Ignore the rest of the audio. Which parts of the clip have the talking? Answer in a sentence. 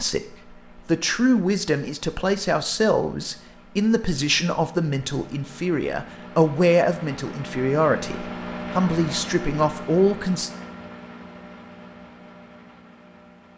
The talking can be heard from 0.0 to 10.5 s.